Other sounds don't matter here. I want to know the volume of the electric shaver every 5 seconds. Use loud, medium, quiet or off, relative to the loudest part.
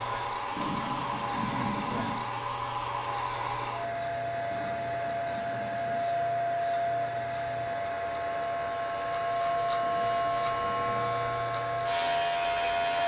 quiet, medium, loud.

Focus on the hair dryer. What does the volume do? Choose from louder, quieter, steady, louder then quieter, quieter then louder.
steady.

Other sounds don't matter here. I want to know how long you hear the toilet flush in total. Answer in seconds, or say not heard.
5 s.